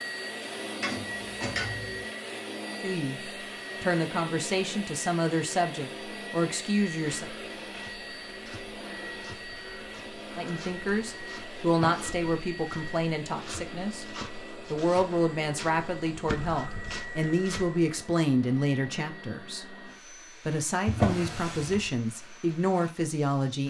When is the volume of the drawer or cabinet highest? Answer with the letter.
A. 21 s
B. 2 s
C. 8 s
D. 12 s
A.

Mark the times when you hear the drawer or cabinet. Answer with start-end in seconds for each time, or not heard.
0.8-2.0, 10.8-12.1, 20.9-21.9.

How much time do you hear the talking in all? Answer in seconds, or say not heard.
16 s.